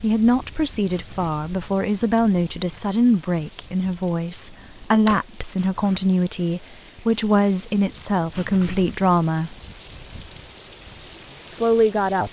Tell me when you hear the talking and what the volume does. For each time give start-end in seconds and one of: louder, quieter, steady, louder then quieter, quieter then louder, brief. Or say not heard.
0.0-9.6 steady
11.5-12.2 brief.